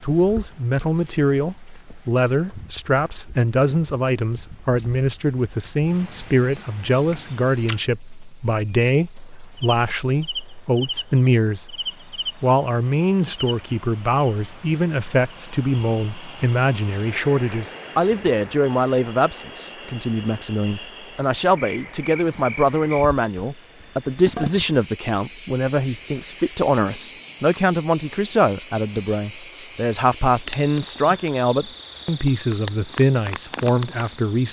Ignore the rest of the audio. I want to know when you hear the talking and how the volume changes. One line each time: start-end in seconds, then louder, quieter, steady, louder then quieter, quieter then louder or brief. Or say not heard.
0.0-34.4 steady.